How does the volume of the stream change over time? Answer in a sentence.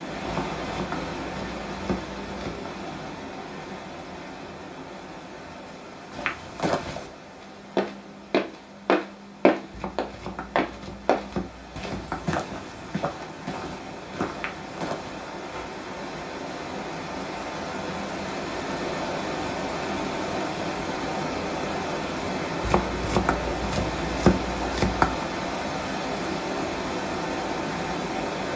The volume of the stream goes down, then up.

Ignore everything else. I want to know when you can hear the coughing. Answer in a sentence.
The coughing can't be heard in this clip.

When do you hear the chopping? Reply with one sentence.
You can hear the chopping from 0.2 to 2.7 s, from 9.7 to 12.2 s and from 22.6 to 25.2 s.